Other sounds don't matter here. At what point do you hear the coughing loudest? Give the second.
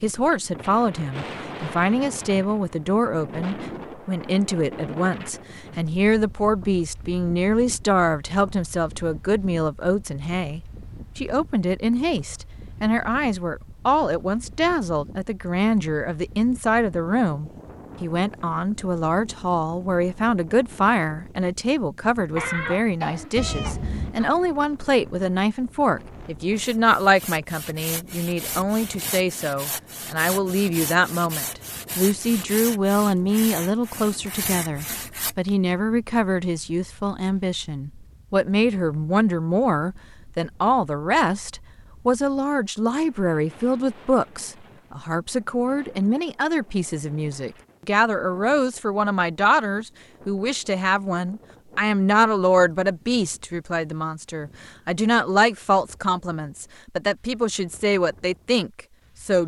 23 s.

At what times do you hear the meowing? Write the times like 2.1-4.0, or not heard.
23.4-24.1.